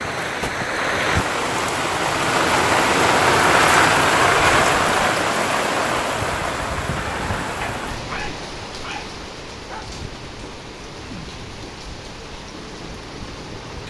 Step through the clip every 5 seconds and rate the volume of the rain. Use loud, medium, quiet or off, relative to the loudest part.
loud, medium, quiet.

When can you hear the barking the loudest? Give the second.
8 s.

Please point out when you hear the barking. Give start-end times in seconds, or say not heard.
7.6-9.9.